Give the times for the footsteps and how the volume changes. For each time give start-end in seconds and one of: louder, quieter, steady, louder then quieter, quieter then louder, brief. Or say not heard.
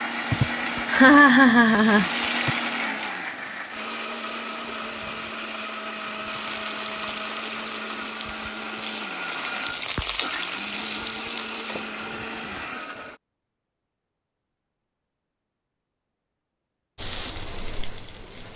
not heard.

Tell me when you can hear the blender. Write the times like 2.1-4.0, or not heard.
0.0-13.2.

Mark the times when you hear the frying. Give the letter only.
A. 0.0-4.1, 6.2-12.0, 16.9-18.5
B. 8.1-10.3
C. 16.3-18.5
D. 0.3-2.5
A.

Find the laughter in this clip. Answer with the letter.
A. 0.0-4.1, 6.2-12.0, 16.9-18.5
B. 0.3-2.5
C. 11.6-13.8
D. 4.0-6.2
B.